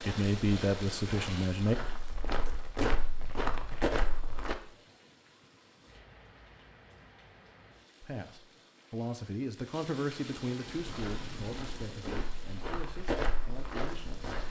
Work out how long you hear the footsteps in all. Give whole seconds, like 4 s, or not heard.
8 s.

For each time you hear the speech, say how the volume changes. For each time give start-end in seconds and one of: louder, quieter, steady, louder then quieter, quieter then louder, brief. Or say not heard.
0.0-1.8 brief
8.0-14.3 quieter.